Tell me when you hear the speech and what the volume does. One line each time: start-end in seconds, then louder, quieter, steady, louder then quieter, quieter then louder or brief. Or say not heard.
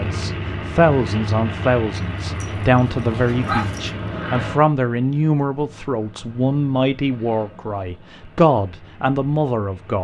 0.0-9.9 steady.